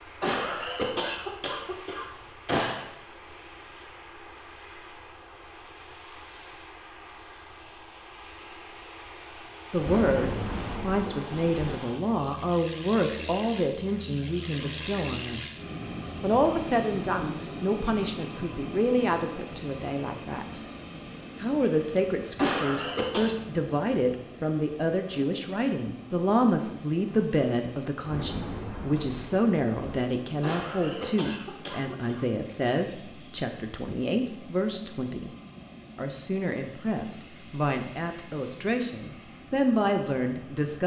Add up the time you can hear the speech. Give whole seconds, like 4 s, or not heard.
29 s.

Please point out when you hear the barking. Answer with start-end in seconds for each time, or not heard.
not heard.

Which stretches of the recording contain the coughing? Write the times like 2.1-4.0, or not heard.
0.2-2.9, 22.4-23.4, 30.4-32.2.